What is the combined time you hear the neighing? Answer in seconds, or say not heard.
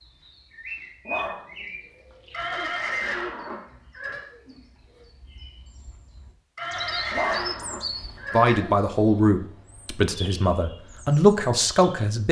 4 s.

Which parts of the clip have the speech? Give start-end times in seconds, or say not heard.
8.3-12.2.